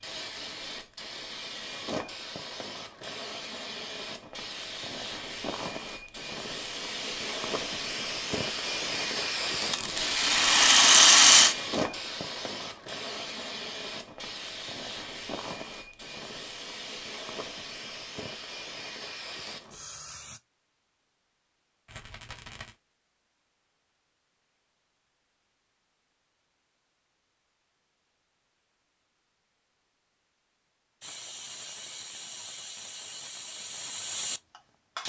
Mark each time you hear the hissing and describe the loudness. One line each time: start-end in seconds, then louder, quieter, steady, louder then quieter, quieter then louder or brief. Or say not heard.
0.0-20.4 louder then quieter
31.0-35.0 louder.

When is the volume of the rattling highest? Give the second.
11 s.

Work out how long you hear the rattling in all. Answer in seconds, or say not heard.
3 s.